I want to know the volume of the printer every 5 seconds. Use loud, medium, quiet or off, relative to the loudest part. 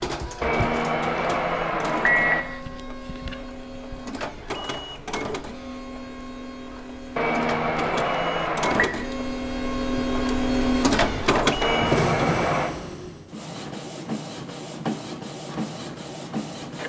medium, medium, loud, medium.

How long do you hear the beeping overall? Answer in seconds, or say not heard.
5 s.